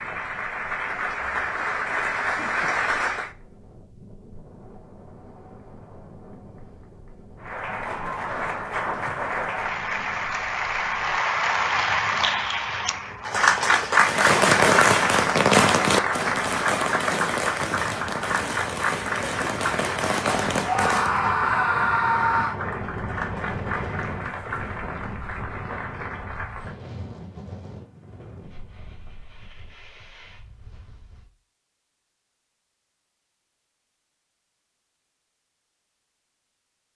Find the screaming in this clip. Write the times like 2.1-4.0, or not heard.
20.6-22.6.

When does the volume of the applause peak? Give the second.
14 s.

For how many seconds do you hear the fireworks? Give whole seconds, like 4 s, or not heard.
7 s.